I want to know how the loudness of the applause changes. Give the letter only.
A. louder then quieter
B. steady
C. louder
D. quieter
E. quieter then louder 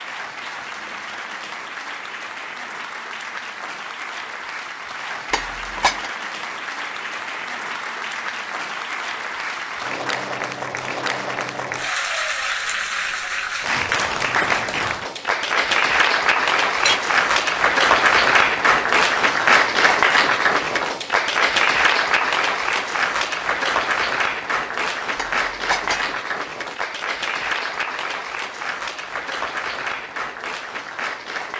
A.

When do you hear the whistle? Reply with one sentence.
The whistle can't be heard in this clip.